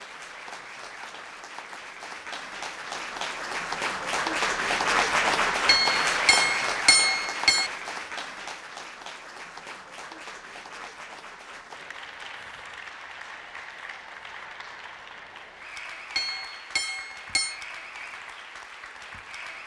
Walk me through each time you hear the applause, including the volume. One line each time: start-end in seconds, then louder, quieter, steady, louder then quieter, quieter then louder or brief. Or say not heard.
0.0-19.6 louder then quieter.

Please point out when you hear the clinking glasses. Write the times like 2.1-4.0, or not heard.
5.7-7.7, 16.1-17.6.